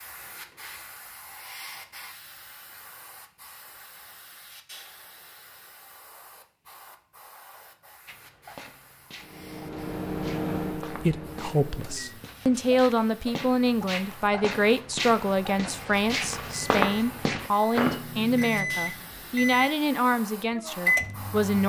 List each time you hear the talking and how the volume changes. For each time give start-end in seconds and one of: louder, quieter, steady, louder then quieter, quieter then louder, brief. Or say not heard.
10.8-21.6 steady.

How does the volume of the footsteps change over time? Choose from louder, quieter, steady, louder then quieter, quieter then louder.
louder.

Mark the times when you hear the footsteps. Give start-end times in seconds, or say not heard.
8.1-18.0.